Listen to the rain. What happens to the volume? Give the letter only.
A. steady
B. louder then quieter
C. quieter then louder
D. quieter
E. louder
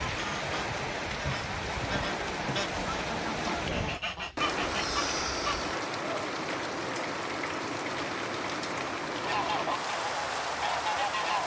A.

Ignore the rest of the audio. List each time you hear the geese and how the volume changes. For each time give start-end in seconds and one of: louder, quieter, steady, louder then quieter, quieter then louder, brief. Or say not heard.
0.0-5.8 louder
9.2-11.4 brief.